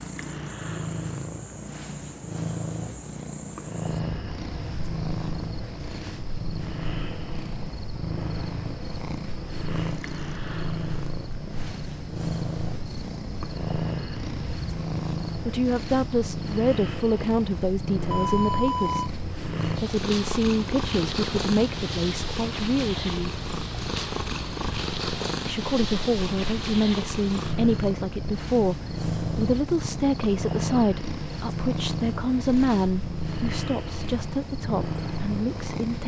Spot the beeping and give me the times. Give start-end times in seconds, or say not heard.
18.1-19.1.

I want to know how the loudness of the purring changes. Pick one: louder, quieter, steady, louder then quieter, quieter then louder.
steady.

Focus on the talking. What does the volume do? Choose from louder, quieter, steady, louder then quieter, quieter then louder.
steady.